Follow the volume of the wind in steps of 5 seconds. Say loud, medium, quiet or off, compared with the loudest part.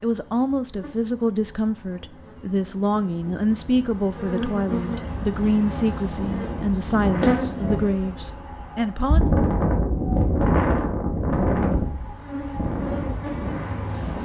off, loud, loud.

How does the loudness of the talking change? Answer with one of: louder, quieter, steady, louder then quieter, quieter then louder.
steady.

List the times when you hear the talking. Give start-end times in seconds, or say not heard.
0.0-9.3.